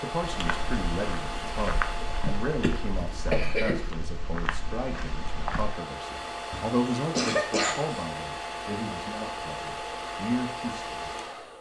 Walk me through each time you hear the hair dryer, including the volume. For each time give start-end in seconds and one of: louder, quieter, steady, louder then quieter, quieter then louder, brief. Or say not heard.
0.0-11.5 quieter then louder.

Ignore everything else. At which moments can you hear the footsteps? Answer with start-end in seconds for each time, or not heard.
0.2-5.7.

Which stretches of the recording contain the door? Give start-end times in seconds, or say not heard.
not heard.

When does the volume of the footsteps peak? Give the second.
2 s.